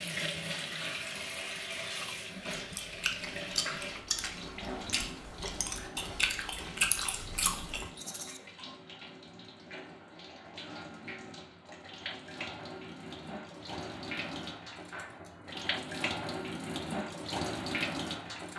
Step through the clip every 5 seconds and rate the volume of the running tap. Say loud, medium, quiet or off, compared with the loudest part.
loud, medium, medium, loud.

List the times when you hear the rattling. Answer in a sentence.
The rattling can be heard from 8.0 to 8.4 s.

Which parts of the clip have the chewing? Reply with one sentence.
The chewing can be heard from 2.5 to 7.9 s.